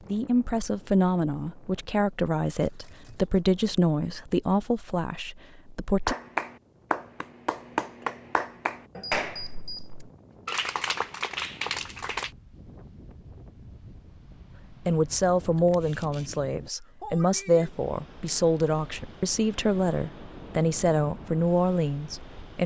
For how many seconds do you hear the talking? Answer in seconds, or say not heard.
14 s.